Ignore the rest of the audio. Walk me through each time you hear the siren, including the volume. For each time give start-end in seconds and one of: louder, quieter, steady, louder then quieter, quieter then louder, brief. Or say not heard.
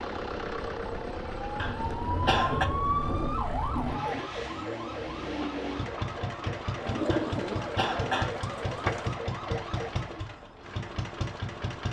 0.0-10.2 louder then quieter.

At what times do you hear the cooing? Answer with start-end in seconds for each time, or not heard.
1.6-4.3, 6.8-9.2.